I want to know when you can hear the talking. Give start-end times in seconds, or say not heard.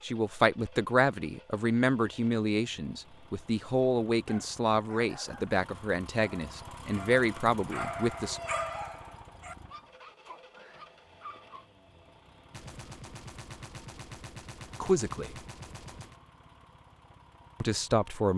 0.0-8.4, 14.8-15.3, 17.6-18.3.